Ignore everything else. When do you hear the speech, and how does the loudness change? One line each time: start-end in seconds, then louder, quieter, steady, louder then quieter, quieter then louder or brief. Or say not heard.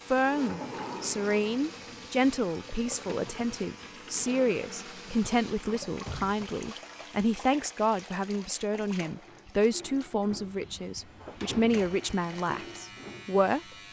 0.1-13.6 steady.